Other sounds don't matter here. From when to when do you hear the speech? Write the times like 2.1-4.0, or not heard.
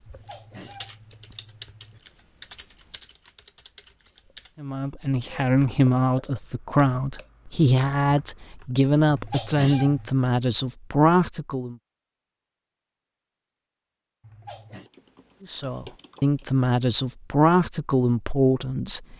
4.6-11.8, 15.4-19.1.